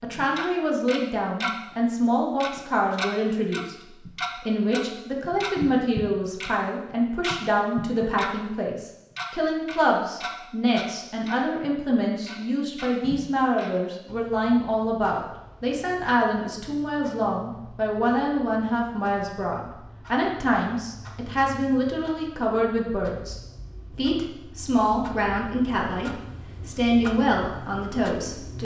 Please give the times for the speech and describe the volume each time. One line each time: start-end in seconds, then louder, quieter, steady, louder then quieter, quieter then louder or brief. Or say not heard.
0.0-28.5 steady.